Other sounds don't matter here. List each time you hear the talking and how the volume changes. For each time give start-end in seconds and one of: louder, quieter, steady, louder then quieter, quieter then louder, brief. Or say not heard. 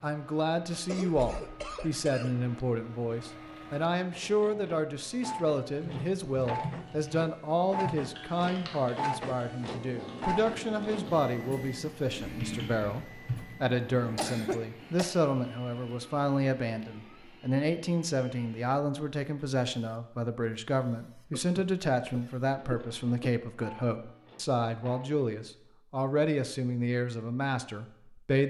0.0-28.4 steady.